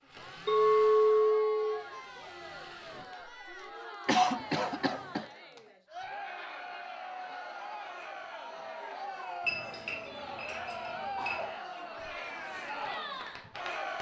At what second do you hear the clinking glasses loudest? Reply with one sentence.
The volume of the clinking glasses peaks at 1 second.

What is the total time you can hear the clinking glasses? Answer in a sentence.
You can hear the clinking glasses for 3 seconds altogether.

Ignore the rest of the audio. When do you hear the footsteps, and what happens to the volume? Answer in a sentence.
The footsteps can't be heard in this clip.